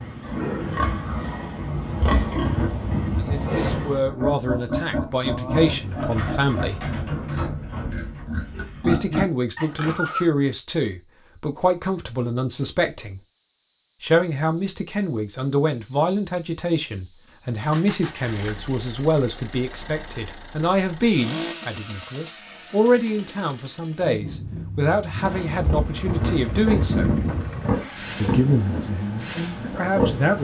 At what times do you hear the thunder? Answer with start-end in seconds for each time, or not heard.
1.6-4.4, 25.2-27.8.